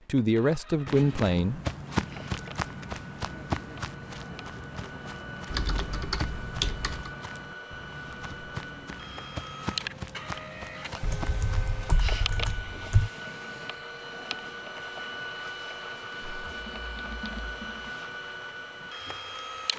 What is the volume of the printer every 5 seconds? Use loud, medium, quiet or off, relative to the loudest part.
medium, loud, loud, loud.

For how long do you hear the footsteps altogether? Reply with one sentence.
You can hear the footsteps for 11 seconds altogether.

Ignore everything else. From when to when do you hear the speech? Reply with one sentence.
The speech can be heard from 0.1 to 1.6 s.